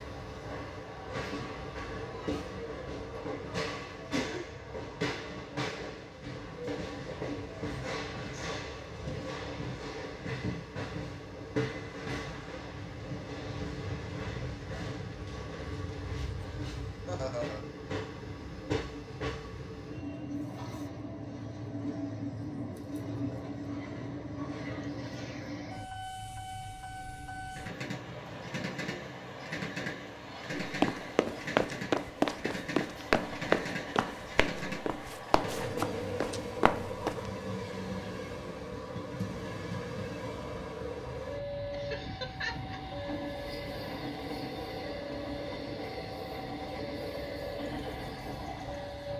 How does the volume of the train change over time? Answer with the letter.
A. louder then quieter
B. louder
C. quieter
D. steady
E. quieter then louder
D.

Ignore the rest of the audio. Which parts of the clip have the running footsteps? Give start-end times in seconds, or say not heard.
30.6-37.2.